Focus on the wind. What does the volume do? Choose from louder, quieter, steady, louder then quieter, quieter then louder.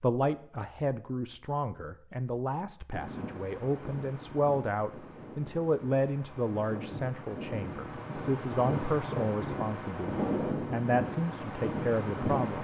louder.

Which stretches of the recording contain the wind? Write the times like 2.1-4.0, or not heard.
2.9-12.5.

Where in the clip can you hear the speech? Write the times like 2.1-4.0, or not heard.
0.0-12.5.